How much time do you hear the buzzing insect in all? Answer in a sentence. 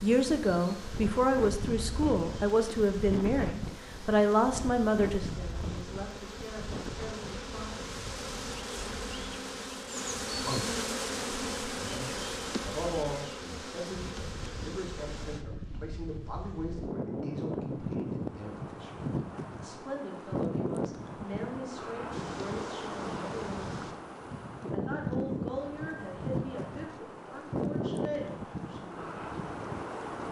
The buzzing insect can be heard for 17 seconds in total.